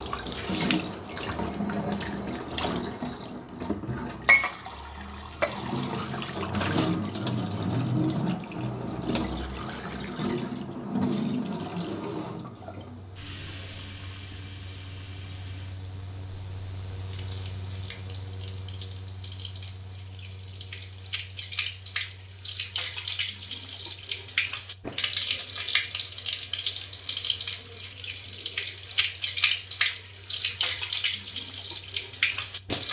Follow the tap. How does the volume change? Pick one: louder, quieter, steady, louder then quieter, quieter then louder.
quieter then louder.